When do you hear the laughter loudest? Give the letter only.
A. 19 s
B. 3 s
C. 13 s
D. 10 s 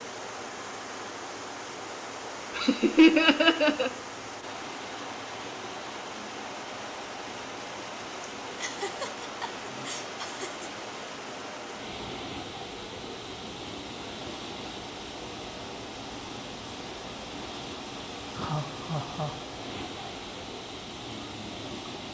B.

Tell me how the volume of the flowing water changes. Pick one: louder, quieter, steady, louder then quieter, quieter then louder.
steady.